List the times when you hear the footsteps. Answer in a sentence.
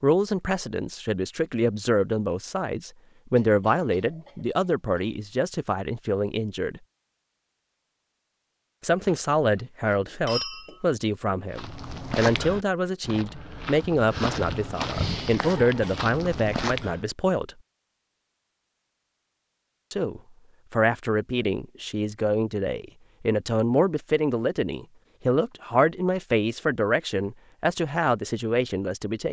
The footsteps can be heard from 11.5 to 17.1 s.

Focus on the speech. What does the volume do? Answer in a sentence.
The loudness of the speech stays about the same.